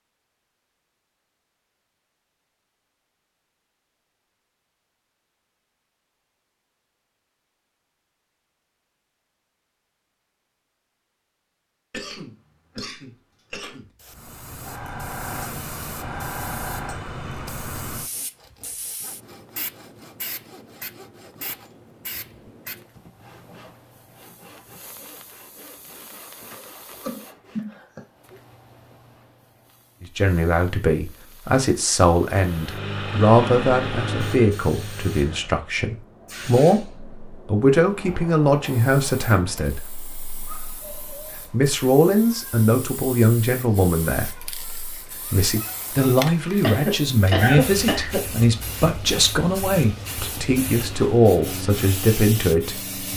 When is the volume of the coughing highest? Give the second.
47 s.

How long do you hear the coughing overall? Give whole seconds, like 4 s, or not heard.
5 s.